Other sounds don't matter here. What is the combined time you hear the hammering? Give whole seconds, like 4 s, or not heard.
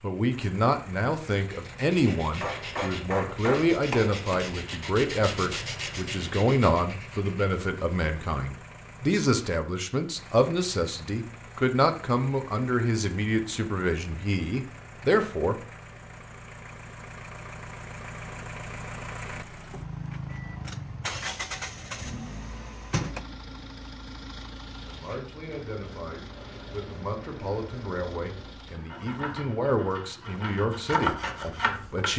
2 s.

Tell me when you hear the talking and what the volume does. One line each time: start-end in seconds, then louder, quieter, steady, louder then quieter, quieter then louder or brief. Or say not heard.
0.0-15.6 steady
24.9-32.1 louder.